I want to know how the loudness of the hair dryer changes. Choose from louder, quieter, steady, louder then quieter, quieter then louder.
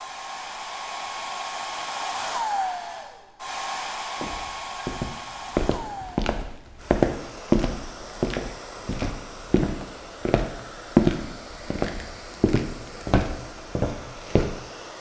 quieter.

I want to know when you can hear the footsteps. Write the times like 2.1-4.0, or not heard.
4.2-14.5.